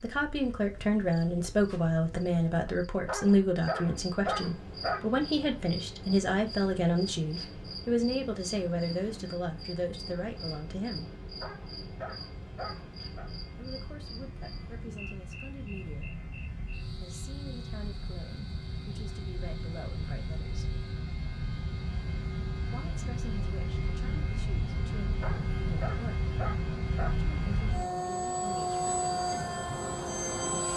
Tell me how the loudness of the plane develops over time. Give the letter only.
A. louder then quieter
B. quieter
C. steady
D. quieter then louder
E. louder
E.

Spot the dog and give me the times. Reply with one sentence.
The dog can be heard from 3.0 to 5.0 s, from 11.4 to 13.3 s and from 25.2 to 27.1 s.